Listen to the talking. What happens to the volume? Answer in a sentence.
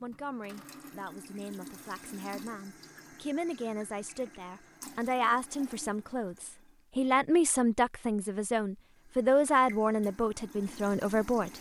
The volume of the talking goes up.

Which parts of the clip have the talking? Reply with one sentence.
The talking can be heard from 0.0 to 11.5 s.